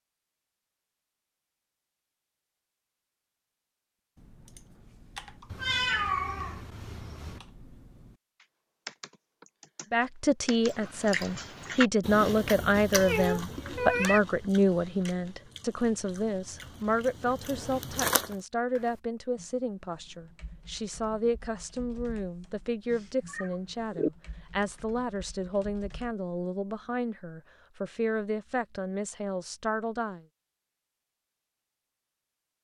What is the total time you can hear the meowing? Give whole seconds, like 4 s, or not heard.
4 s.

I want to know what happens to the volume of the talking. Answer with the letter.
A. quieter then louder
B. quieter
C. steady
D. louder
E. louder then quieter
B.